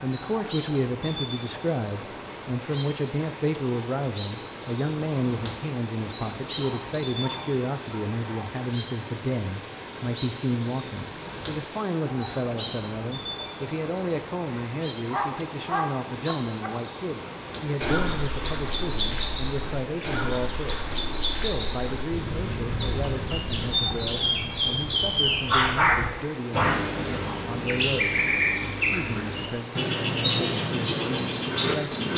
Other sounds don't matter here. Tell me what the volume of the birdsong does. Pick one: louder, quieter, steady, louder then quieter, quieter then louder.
steady.